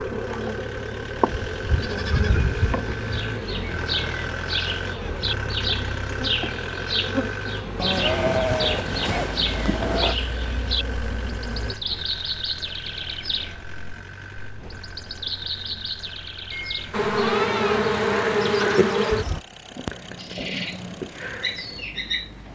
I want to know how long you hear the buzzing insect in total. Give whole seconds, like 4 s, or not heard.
14 s.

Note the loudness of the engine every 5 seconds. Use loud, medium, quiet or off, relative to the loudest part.
loud, loud, medium, medium, quiet.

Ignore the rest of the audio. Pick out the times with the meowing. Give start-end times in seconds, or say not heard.
not heard.